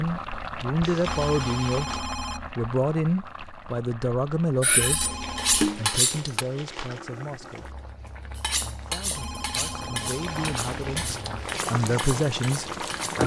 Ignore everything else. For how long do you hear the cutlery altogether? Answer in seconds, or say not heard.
7 s.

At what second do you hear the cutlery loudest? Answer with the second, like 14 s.
6 s.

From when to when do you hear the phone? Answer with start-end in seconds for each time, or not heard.
1.1-2.6, 4.8-5.7, 9.2-11.2.